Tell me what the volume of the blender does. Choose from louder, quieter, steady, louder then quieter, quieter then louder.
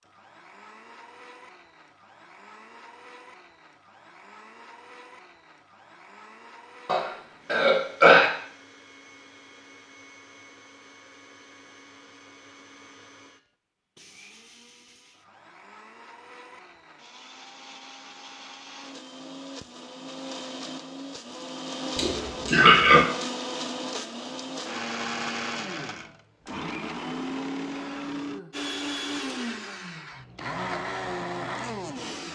louder.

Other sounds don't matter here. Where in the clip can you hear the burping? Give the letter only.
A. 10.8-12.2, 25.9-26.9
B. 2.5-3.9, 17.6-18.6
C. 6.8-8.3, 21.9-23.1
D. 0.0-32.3
C.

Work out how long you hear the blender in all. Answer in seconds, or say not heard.
32 s.